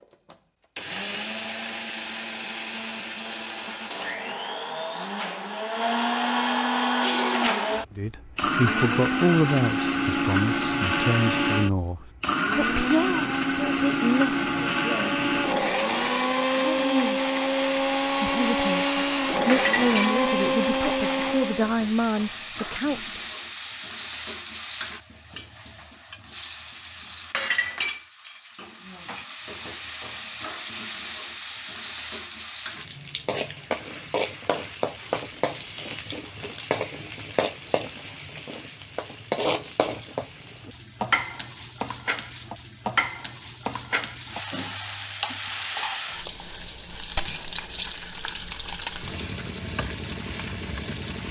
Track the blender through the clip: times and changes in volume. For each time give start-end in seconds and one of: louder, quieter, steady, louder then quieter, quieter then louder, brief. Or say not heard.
0.0-21.8 louder.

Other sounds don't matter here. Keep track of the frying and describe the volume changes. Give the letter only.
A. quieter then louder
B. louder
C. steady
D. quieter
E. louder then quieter
C.